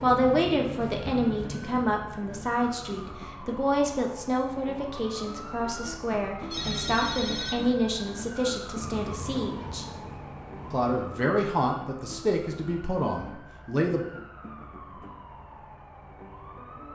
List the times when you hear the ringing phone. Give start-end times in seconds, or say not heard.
6.5-7.8.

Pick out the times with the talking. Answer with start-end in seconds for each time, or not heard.
0.0-9.8, 10.7-14.1.